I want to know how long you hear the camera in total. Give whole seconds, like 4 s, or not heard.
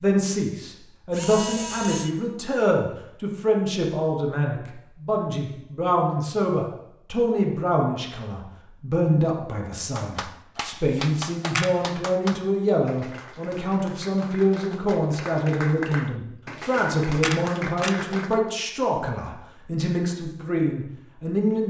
3 s.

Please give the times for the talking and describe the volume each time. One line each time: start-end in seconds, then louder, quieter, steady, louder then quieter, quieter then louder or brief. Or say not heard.
0.0-21.6 steady.